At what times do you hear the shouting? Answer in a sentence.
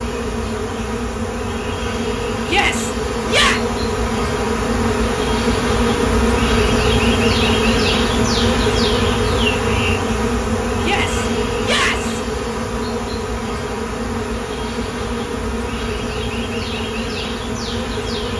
The shouting can be heard from 2.5 to 3.6 s and from 10.8 to 12.2 s.